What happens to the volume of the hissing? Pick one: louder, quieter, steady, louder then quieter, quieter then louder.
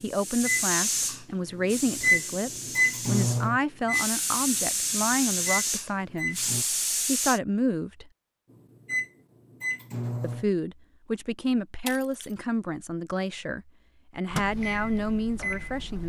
quieter then louder.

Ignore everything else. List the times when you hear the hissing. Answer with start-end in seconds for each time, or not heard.
0.0-7.4.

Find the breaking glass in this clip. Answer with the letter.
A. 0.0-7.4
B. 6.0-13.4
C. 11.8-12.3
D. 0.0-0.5
C.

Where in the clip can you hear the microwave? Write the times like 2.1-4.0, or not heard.
0.4-6.7, 8.8-10.4, 14.3-16.0.